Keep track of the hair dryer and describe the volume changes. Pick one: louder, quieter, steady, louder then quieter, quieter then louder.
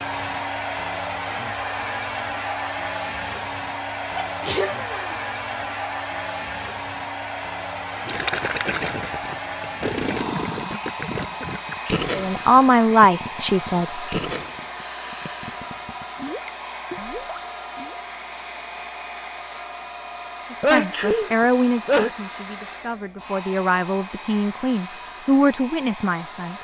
quieter.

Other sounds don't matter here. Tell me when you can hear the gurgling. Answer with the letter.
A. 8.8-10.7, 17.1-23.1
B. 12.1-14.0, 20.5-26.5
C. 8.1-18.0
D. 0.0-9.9
C.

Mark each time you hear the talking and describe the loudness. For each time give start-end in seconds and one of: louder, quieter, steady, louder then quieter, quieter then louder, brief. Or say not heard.
12.1-14.0 brief
20.5-26.5 quieter then louder.